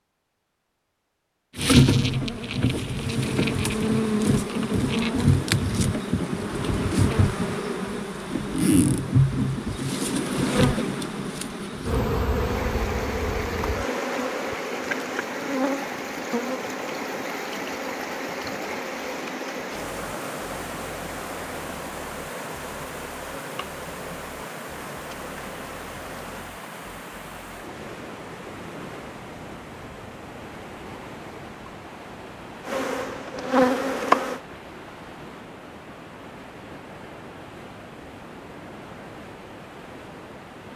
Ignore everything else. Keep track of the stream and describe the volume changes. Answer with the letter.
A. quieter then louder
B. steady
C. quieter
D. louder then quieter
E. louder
C.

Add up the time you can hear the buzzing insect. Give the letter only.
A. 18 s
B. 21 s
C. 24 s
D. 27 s
D.